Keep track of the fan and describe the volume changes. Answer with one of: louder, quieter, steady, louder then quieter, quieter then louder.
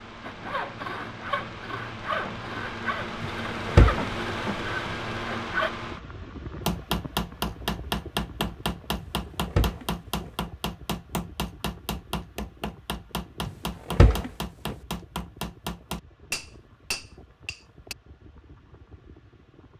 quieter.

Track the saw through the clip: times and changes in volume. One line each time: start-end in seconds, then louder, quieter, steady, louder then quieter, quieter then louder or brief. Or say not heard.
0.2-5.7 steady.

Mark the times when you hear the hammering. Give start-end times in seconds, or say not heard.
6.7-17.9.